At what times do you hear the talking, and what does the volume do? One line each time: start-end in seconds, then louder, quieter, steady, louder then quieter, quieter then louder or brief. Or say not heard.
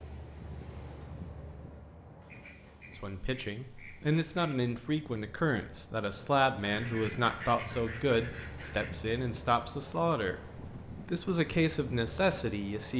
3.0-12.9 steady.